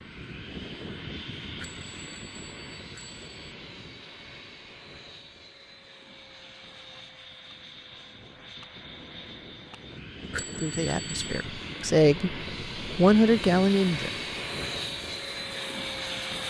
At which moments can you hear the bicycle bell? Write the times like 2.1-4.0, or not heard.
1.6-3.5, 10.3-11.4.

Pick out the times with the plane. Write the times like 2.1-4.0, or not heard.
0.0-16.4.